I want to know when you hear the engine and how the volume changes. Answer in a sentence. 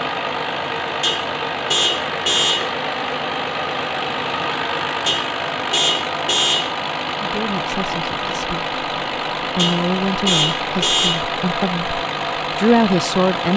The engine can be heard from 0.0 to 13.5 s, at a steady volume.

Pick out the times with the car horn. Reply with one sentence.
The car horn can be heard from 1.0 to 2.8 s, from 5.0 to 6.8 s and from 9.6 to 11.2 s.